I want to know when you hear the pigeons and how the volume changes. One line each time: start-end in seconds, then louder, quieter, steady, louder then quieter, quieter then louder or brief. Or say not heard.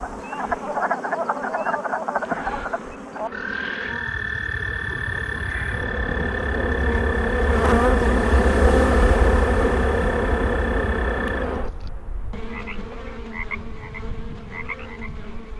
not heard.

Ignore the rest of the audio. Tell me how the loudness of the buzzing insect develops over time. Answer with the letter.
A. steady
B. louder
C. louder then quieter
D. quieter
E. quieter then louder
C.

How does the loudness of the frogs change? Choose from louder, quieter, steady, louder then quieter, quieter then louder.
quieter.